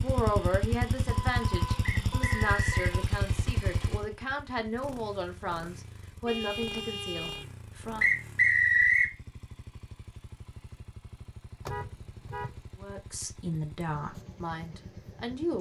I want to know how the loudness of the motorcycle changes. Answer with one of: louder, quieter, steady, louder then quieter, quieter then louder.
quieter.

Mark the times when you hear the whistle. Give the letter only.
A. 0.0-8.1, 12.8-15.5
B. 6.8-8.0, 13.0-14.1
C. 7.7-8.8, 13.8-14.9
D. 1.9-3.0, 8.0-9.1
D.